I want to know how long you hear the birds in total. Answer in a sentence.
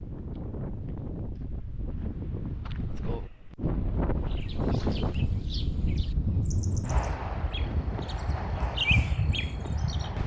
You can hear the birds for 6 seconds altogether.